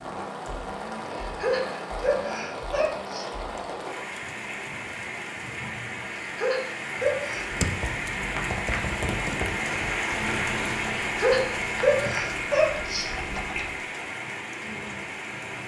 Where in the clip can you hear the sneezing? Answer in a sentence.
You can hear the sneezing from 1.2 to 3.2 s, from 6.2 to 7.5 s and from 11.0 to 13.1 s.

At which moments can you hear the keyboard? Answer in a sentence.
You can hear the keyboard from 7.4 to 13.8 s.